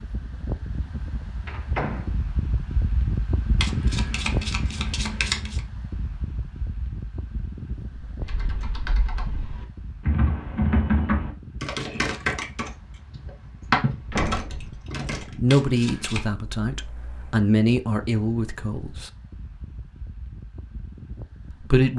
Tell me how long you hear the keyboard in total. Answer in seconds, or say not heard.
7 s.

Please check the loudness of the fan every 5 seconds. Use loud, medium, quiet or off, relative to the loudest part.
loud, medium, quiet, quiet, quiet.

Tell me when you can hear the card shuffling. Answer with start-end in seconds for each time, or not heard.
3.5-5.6, 11.9-12.3, 15.4-16.3.